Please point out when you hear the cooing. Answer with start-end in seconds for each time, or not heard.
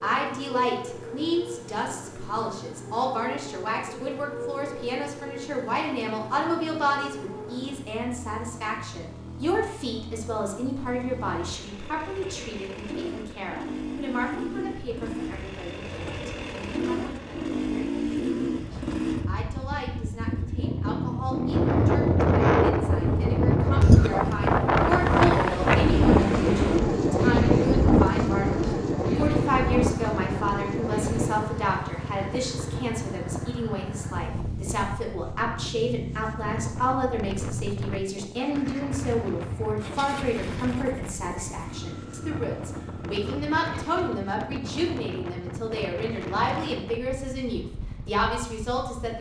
not heard.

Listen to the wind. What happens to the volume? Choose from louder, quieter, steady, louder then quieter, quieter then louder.
quieter.